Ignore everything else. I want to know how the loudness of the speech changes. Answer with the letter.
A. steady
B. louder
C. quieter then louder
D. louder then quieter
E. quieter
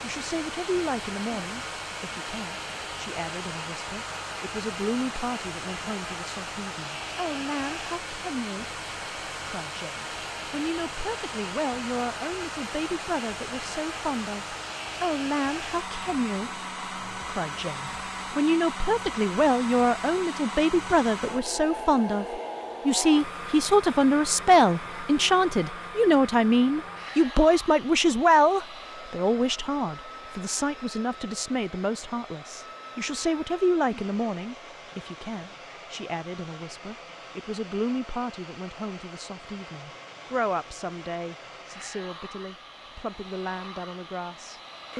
D.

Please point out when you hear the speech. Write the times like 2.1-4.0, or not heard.
0.0-8.8, 9.4-16.5, 17.1-44.9.